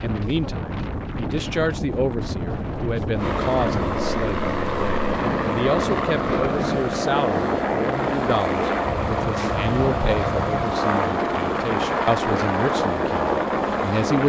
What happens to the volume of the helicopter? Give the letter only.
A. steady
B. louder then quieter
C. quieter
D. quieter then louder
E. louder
A.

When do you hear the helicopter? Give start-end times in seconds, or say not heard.
3.1-14.2.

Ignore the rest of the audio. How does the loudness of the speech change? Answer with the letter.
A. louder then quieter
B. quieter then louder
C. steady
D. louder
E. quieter
C.